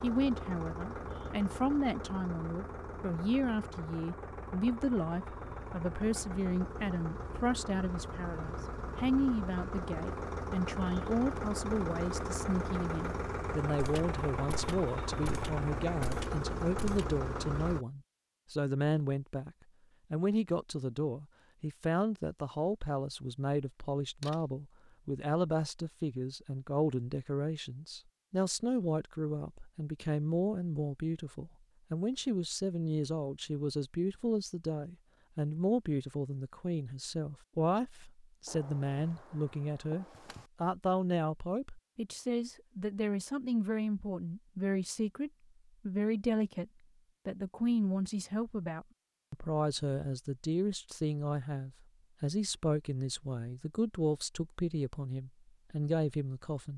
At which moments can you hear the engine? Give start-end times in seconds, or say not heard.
0.0-17.9.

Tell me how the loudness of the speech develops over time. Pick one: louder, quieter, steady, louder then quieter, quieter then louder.
steady.